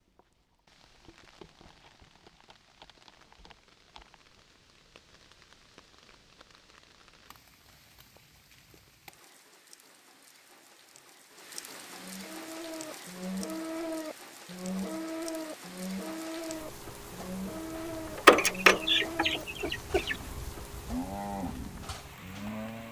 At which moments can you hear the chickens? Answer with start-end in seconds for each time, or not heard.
18.1-20.1.